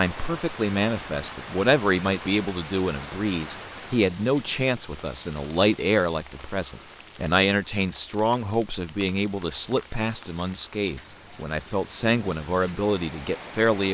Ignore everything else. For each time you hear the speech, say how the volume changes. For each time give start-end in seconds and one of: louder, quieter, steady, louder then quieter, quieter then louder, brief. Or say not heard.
0.0-13.8 steady.